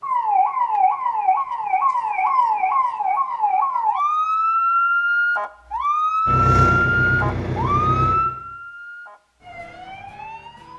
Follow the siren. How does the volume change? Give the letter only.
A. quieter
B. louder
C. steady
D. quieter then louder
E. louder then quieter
A.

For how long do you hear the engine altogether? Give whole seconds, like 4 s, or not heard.
2 s.